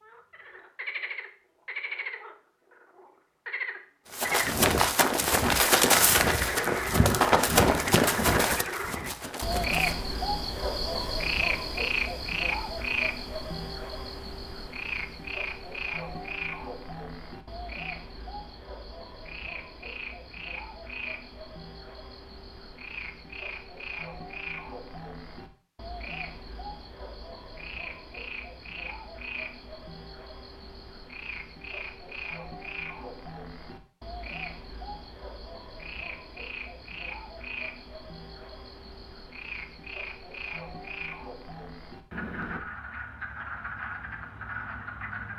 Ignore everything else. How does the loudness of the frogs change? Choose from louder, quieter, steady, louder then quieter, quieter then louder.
quieter.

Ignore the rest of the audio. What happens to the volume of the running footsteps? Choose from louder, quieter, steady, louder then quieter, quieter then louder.
quieter.